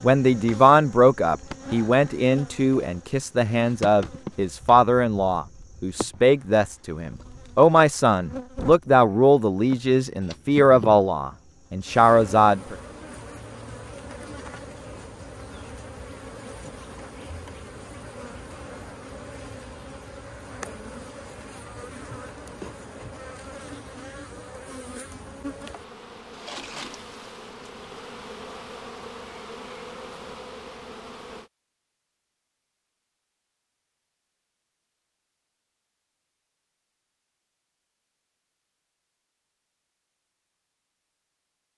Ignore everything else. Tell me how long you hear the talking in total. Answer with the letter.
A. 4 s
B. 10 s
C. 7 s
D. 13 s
D.